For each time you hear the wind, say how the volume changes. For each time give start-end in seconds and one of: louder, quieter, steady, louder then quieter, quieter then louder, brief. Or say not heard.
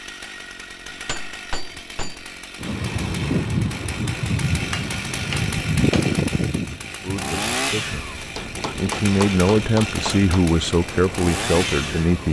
2.5-12.2 quieter.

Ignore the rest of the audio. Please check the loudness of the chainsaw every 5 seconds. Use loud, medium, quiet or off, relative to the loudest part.
medium, loud, loud.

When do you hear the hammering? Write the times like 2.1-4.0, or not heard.
0.8-2.3, 4.5-6.2, 8.3-10.3.